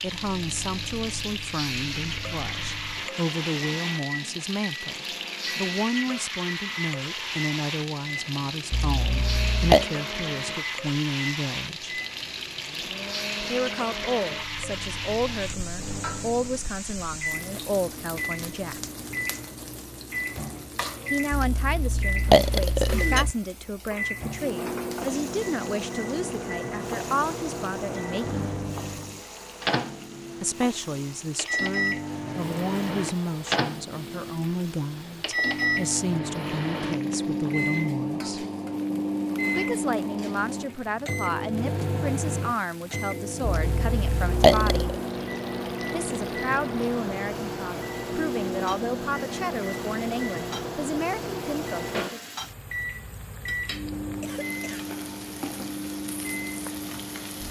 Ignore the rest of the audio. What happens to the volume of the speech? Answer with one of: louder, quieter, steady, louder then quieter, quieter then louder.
steady.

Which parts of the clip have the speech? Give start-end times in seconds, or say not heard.
0.0-11.9, 13.4-18.8, 21.1-28.4, 30.4-38.5, 39.5-45.0, 45.9-52.2.